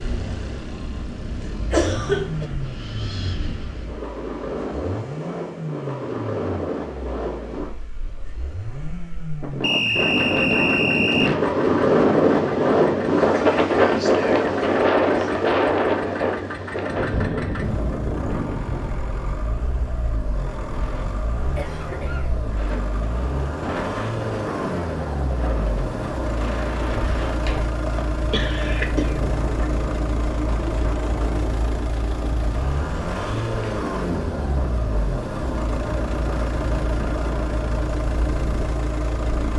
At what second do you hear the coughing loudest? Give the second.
2 s.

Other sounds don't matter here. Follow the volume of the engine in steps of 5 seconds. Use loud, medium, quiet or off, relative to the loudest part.
medium, medium, medium, medium, loud, loud, loud, loud.